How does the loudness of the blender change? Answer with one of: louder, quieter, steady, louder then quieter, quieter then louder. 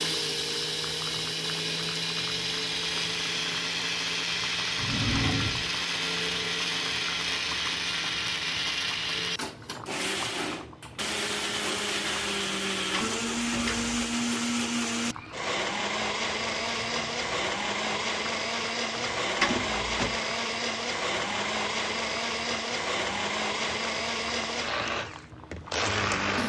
steady.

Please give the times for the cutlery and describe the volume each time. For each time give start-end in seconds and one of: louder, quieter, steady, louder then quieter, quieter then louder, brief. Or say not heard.
not heard.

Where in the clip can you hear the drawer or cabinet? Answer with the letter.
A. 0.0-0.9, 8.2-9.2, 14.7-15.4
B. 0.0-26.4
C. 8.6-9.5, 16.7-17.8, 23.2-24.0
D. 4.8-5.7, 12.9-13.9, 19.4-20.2
D.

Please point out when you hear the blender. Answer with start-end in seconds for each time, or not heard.
0.0-26.4.